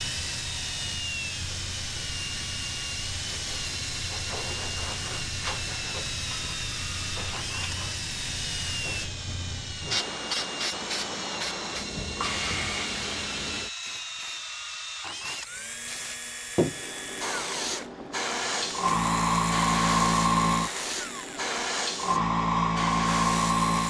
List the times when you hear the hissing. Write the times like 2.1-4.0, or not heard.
0.0-23.8.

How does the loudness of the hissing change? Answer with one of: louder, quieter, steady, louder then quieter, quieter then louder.
louder.